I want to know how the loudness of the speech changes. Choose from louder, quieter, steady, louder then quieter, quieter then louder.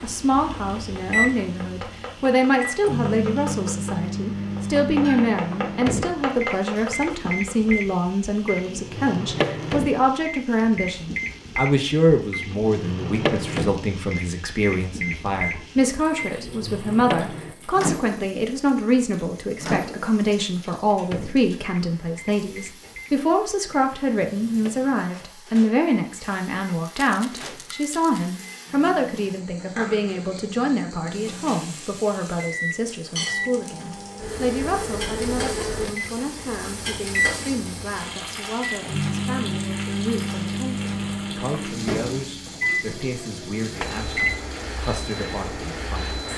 quieter.